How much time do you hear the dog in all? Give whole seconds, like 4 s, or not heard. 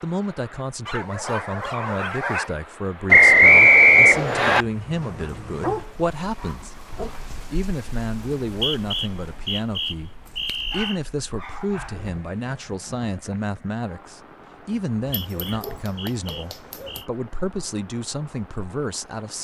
8 s.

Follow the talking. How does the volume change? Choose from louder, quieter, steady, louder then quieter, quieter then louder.
steady.